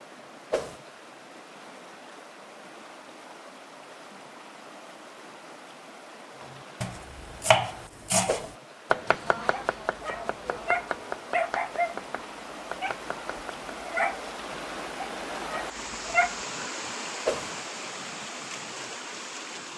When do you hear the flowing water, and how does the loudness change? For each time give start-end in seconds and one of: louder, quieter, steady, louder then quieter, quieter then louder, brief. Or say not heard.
0.0-19.7 louder.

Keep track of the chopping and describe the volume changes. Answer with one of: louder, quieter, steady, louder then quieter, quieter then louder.
quieter.